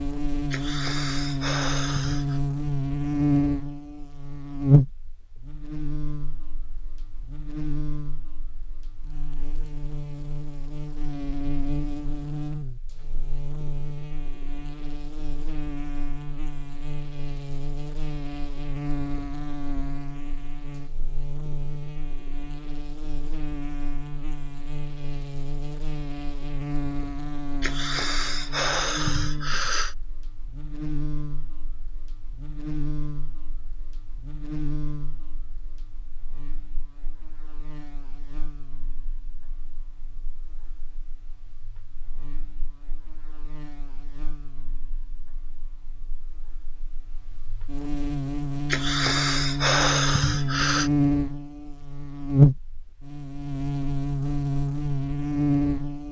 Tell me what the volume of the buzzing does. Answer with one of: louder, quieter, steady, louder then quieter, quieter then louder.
quieter then louder.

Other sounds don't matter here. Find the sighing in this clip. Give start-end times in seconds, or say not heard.
0.5-2.4, 27.6-29.9, 48.6-50.9.